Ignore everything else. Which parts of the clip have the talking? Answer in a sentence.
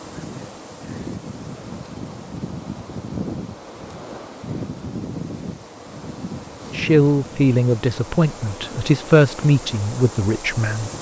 The talking can be heard from 6.7 to 10.9 s.